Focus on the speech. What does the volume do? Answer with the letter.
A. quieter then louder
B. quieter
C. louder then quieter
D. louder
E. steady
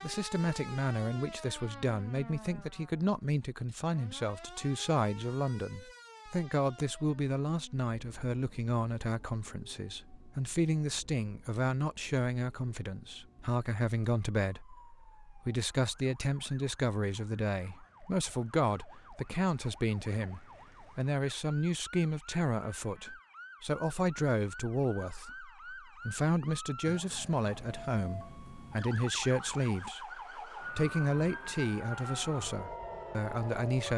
E.